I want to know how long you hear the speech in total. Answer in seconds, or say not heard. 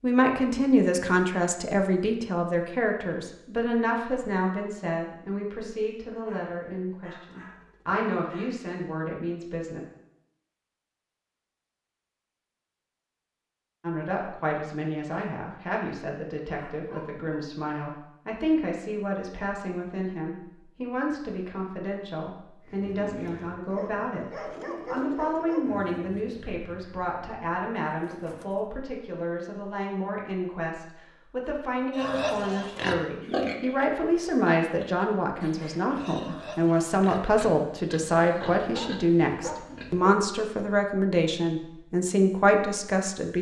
39 s.